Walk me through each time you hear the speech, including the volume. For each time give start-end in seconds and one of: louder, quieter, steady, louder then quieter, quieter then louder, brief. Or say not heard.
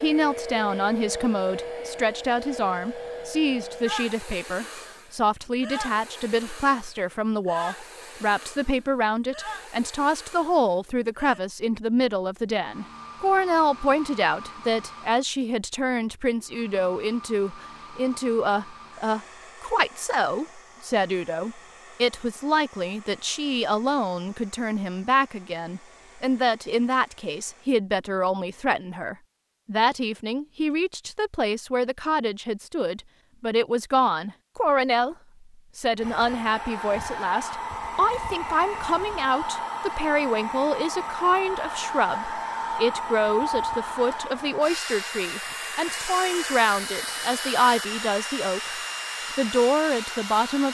0.0-35.1 steady
35.8-48.8 steady
49.4-50.6 brief.